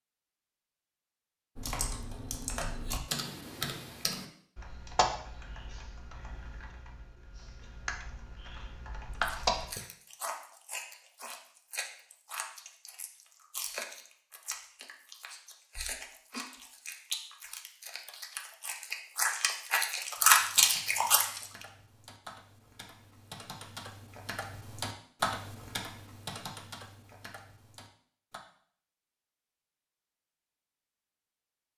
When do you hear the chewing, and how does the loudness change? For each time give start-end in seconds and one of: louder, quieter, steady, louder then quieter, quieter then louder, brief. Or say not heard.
9.1-21.4 louder.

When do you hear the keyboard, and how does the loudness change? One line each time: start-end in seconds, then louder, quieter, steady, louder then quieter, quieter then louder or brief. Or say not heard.
1.6-9.8 quieter then louder
20.1-28.4 louder then quieter.